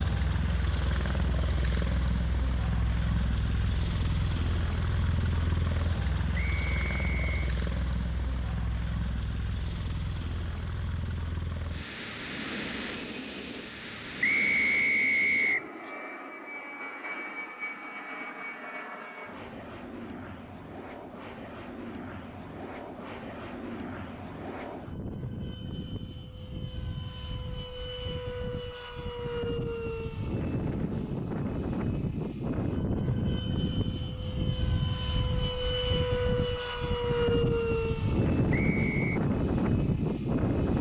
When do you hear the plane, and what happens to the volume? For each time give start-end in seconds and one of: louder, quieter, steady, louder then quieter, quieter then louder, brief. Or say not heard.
0.0-40.7 quieter then louder.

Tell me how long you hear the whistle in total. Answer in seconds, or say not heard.
3 s.